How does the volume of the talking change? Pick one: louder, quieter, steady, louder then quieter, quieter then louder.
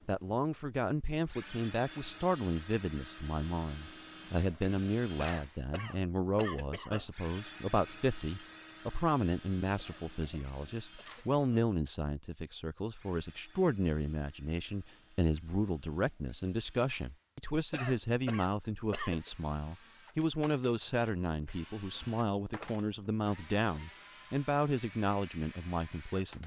steady.